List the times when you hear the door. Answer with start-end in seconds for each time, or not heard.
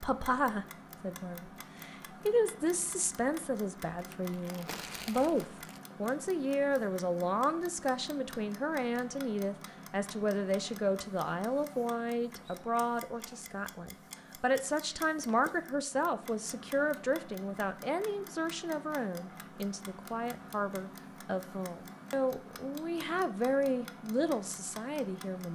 not heard.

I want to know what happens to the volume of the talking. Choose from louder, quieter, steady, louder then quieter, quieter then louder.
steady.